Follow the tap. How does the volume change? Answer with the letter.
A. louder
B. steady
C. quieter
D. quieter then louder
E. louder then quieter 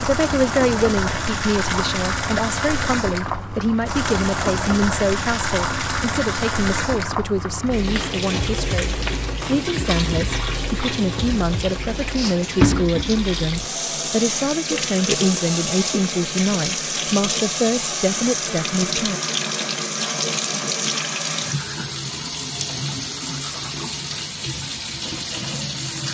B.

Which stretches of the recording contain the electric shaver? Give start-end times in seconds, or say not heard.
not heard.